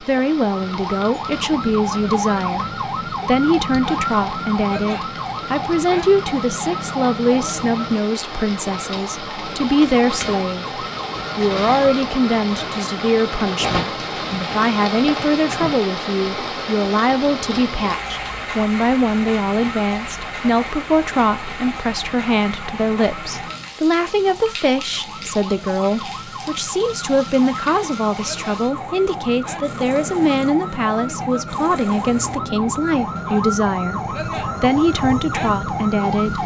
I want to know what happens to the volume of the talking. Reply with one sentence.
The volume of the talking stays about the same.